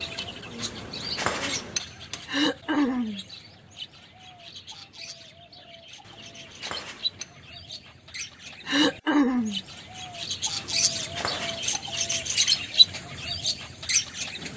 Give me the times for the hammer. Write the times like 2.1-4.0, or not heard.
0.6-2.2, 6.0-7.4, 10.6-12.7.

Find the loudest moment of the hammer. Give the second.
1 s.